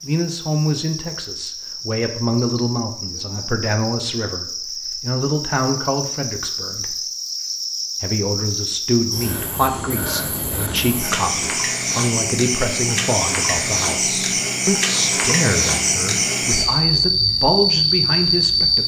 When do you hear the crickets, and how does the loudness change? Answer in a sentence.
You can hear the crickets from 0.0 to 18.8 s, getting louder.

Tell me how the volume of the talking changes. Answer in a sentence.
The loudness of the talking stays about the same.